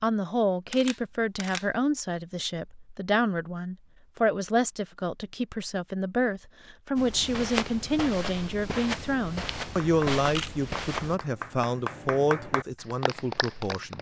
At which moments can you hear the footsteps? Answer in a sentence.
The footsteps can be heard from 7.0 to 11.2 s.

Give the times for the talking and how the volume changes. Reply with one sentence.
The talking can be heard from 0.0 to 13.9 s, at a steady volume.